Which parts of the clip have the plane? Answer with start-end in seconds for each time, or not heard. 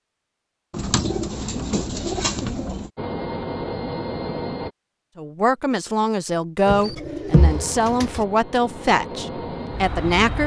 3.0-4.7, 7.3-10.4.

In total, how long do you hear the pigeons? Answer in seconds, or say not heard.
4 s.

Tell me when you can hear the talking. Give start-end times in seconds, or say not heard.
5.2-10.4.